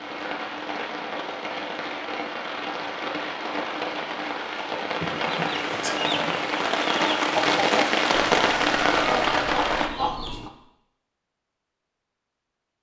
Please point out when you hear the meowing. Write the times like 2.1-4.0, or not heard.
not heard.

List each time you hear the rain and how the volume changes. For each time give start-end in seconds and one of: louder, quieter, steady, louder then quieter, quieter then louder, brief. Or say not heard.
0.0-9.9 louder.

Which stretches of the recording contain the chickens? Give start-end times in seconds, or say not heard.
5.0-10.5.